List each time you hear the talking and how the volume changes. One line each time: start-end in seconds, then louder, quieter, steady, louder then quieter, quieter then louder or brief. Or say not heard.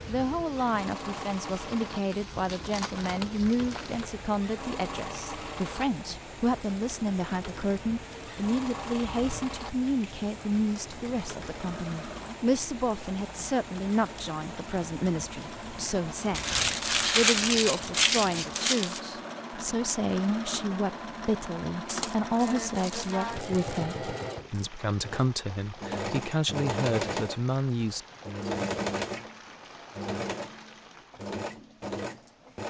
0.1-28.0 steady.